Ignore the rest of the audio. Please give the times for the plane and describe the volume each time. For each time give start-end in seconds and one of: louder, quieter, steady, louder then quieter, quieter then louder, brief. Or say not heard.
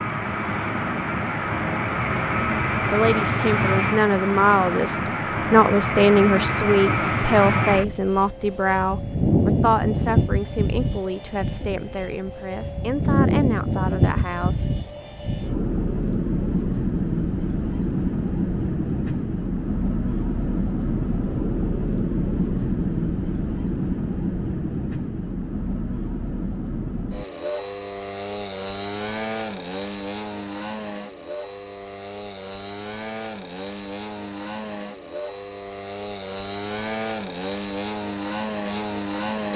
0.0-39.5 quieter.